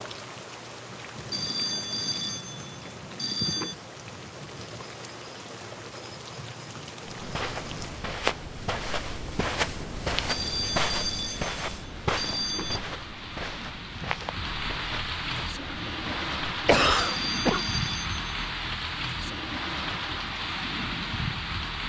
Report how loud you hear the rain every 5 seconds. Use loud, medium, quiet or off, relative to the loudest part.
medium, medium, medium, loud, loud.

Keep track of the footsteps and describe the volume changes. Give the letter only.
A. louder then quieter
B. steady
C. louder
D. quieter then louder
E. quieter
E.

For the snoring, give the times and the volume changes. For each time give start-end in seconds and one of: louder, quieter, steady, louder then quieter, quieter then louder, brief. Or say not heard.
not heard.